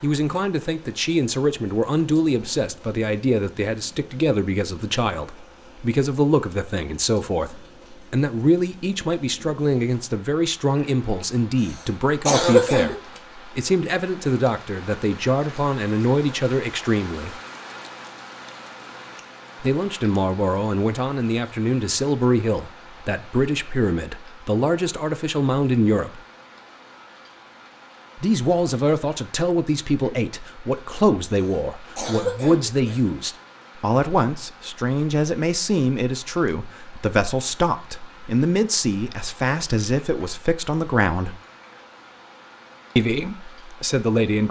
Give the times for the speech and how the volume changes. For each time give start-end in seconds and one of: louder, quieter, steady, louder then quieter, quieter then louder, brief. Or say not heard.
0.0-17.4 steady
19.6-26.2 steady
28.1-41.4 steady
43.0-44.4 brief.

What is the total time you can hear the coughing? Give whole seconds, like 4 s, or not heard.
3 s.